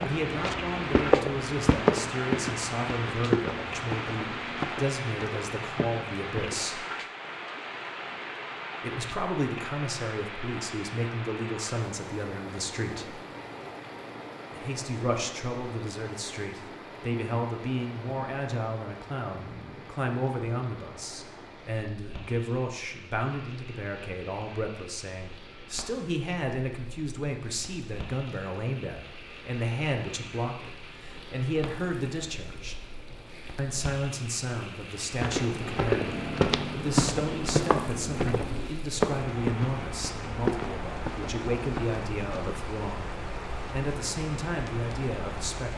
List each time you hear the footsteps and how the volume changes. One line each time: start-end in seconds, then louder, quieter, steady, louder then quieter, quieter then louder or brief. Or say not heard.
0.0-6.7 quieter
35.2-42.6 quieter.